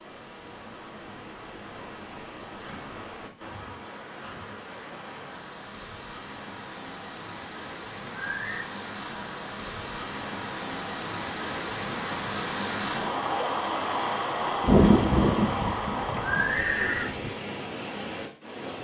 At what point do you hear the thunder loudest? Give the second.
15 s.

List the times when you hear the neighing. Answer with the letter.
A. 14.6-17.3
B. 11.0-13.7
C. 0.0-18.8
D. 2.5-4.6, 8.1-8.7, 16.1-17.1
D.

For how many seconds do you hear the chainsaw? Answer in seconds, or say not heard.
not heard.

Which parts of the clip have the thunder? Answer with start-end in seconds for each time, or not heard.
14.6-17.3.